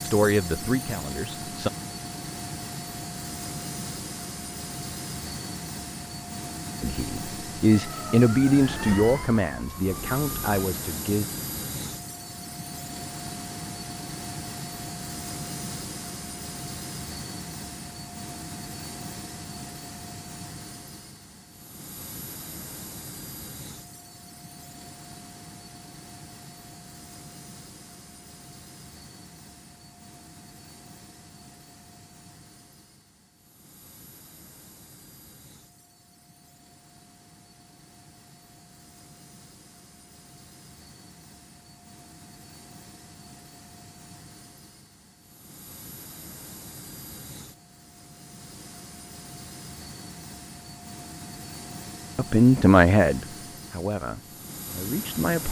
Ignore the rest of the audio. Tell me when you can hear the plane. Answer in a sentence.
You can hear the plane from 0.0 to 55.4 s.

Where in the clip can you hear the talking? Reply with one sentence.
The talking can be heard from 0.0 to 1.7 s, from 6.8 to 11.2 s and from 52.1 to 55.4 s.